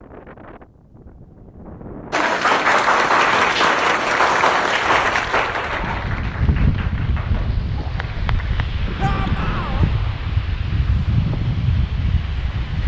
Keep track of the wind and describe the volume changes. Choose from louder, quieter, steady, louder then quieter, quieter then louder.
louder.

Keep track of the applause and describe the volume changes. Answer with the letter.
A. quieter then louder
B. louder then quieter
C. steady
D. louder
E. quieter
E.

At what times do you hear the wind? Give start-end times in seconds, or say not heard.
0.0-12.8.